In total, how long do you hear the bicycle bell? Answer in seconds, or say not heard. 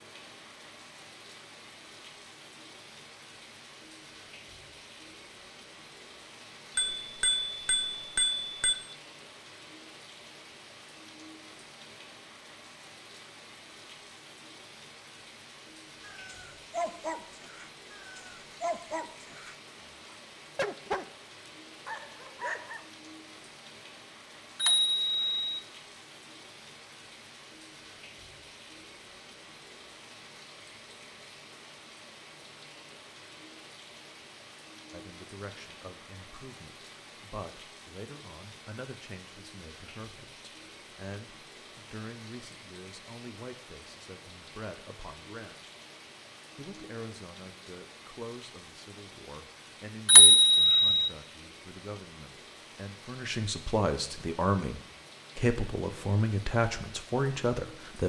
4 s.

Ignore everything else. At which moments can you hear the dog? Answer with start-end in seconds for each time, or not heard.
16.0-21.1, 21.9-22.9.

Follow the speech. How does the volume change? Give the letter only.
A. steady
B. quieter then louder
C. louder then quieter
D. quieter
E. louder
E.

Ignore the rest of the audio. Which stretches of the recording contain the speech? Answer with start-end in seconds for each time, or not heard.
34.9-45.7, 46.5-58.0.